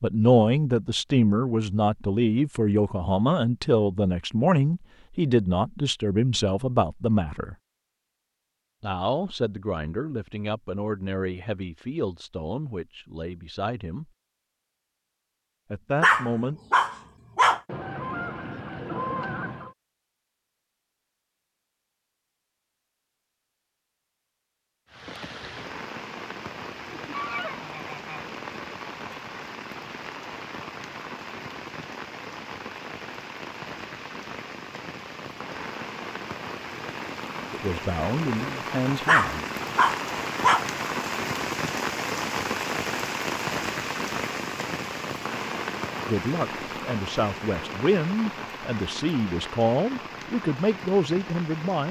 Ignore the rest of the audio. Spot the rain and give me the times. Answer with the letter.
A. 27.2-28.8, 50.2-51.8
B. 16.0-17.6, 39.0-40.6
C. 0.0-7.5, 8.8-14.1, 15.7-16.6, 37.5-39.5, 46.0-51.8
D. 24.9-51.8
D.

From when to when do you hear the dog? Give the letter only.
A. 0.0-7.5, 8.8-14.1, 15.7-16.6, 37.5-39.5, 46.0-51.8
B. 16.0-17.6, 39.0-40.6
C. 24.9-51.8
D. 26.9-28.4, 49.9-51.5
B.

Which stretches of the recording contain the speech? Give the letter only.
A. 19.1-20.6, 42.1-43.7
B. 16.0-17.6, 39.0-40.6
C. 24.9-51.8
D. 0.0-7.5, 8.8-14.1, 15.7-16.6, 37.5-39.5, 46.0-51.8
D.